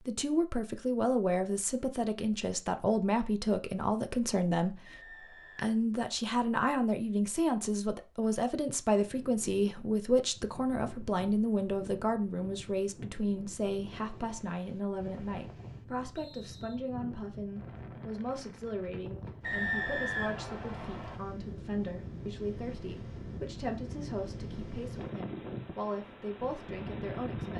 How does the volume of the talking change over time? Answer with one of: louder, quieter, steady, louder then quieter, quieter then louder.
quieter.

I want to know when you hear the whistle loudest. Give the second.
20 s.